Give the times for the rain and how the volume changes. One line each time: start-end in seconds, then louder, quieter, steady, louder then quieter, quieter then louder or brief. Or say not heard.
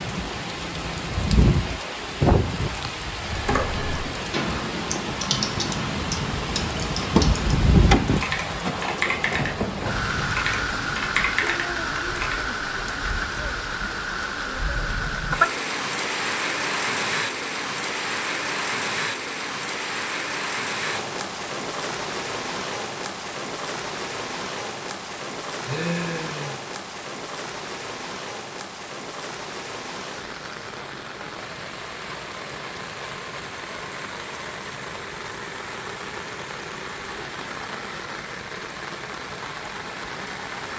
0.0-40.7 quieter.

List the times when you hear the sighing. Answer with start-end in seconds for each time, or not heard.
25.6-26.6.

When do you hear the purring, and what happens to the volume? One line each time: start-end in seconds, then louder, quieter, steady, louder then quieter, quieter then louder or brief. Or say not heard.
not heard.